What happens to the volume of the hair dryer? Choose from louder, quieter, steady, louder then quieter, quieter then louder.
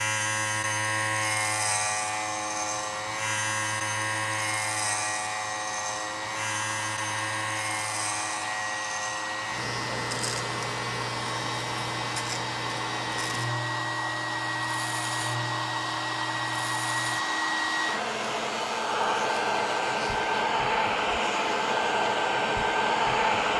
louder.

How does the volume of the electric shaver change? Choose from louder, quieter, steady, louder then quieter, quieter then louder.
quieter.